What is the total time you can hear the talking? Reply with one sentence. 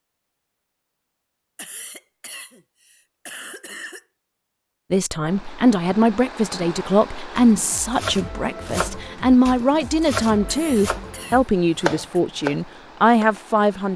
The talking can be heard for 9 seconds in total.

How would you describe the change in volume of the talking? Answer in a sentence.
The volume of the talking stays about the same.